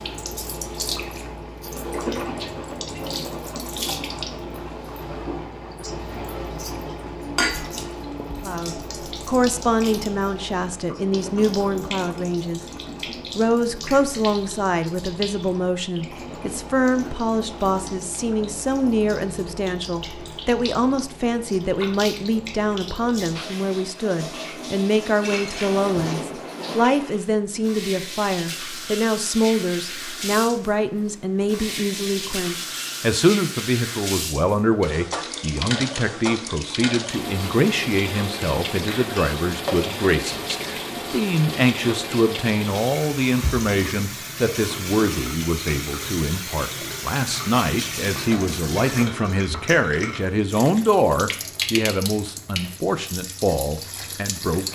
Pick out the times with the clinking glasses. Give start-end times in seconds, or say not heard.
7.3-8.4, 25.1-26.2, 38.9-40.0.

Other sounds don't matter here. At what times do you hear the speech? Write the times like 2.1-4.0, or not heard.
8.4-12.6, 13.3-54.7.